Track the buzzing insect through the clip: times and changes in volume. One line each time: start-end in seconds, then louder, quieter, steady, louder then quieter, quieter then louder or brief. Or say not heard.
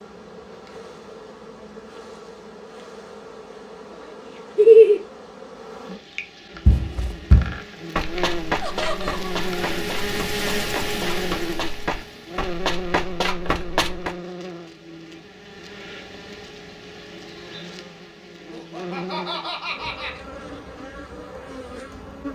0.0-22.2 louder then quieter.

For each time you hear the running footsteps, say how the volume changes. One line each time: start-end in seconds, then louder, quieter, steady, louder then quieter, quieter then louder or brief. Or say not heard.
6.7-14.2 quieter then louder.